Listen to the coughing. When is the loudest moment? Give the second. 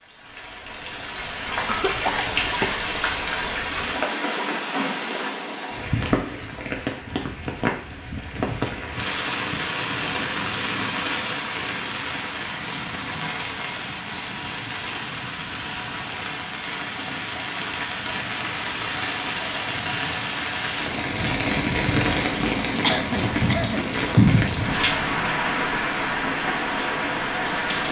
23 s.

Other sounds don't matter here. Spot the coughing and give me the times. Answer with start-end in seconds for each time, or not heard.
1.6-2.9, 22.8-23.9.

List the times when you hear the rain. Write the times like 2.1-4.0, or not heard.
0.1-27.8.